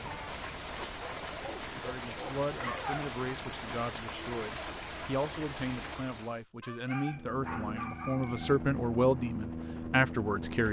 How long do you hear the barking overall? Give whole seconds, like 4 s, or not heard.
4 s.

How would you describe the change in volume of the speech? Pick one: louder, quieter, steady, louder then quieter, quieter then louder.
louder.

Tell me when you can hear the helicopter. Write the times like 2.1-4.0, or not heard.
7.0-10.6.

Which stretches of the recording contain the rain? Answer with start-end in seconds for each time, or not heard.
0.0-6.4.